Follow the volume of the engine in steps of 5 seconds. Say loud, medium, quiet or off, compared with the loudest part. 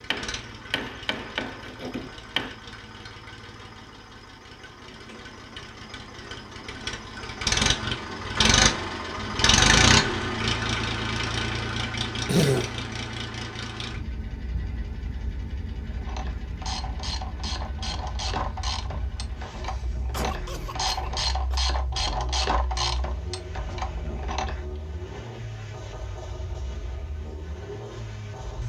quiet, loud, medium, quiet, quiet, quiet.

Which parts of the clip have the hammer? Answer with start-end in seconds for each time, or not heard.
0.1-2.5.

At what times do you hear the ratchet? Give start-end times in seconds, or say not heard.
15.8-24.8.